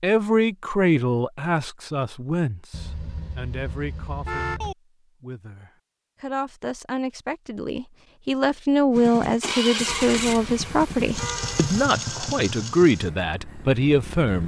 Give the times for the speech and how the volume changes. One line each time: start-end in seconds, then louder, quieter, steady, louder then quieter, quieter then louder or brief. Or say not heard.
0.0-14.4 quieter then louder.